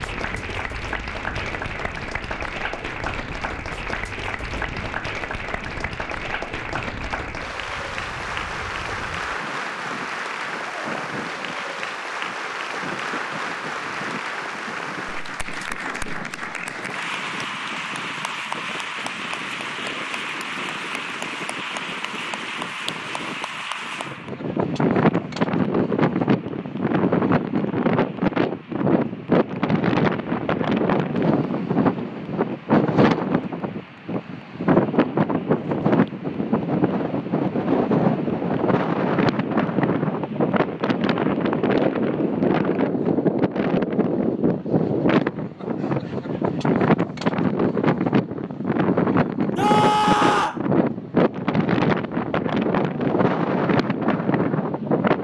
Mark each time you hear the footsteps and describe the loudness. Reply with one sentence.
The footsteps can't be heard in this clip.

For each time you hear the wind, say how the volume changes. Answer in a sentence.
The wind can be heard from 0.0 to 55.1 s, getting louder.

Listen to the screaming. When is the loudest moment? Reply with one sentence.
The volume of the screaming peaks at 50 seconds.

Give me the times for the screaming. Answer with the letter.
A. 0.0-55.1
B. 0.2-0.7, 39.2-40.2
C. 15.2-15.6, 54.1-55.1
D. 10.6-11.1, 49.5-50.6
D.